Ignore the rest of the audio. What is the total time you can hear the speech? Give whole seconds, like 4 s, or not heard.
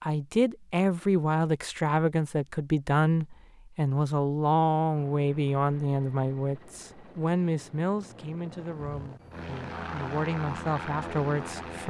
12 s.